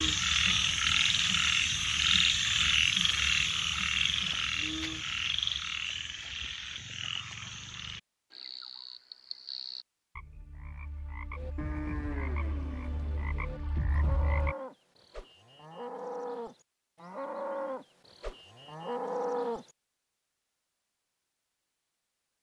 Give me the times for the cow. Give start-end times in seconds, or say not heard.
11.3-19.7.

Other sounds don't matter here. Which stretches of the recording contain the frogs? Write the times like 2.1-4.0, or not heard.
0.0-14.6.